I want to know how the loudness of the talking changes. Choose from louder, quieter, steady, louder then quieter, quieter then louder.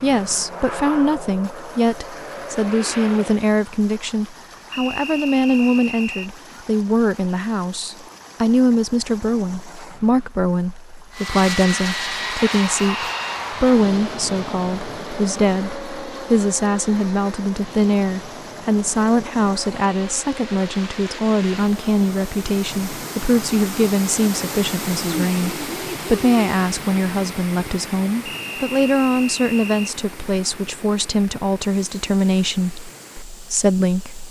steady.